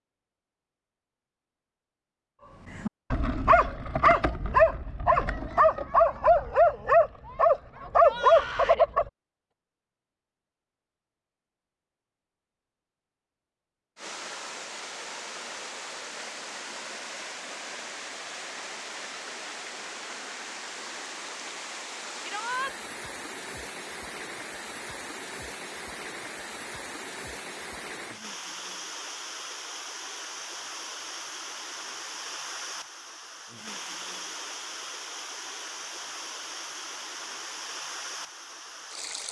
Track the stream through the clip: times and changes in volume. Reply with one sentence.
The stream can be heard from 13.9 to 39.2 s, at a steady volume.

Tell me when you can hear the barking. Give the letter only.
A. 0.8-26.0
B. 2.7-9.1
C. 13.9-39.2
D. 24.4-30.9
B.